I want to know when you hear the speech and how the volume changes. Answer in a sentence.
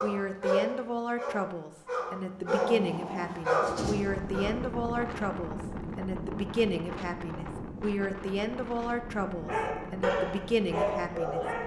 You can hear the speech from 0.0 to 11.4 s, at a steady volume.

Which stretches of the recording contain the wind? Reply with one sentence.
The wind can be heard from 3.9 to 11.6 s.